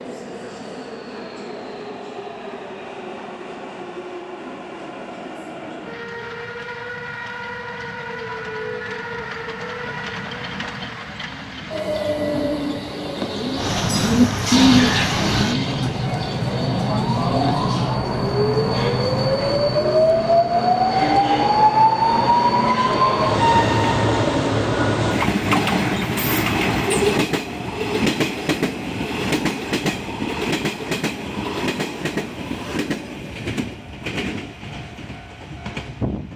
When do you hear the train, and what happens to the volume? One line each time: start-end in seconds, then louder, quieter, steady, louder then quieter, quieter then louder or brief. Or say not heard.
0.0-36.3 louder then quieter.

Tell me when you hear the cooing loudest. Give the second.
15 s.